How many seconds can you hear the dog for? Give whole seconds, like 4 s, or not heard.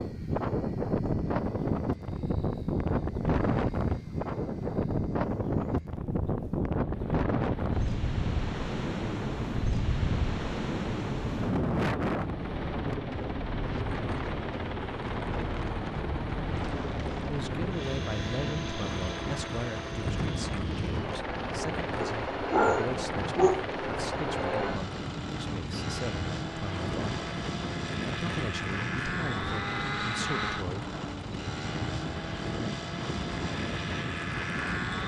2 s.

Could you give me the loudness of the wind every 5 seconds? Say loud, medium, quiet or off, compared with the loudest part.
loud, loud, loud, medium, medium, medium, medium.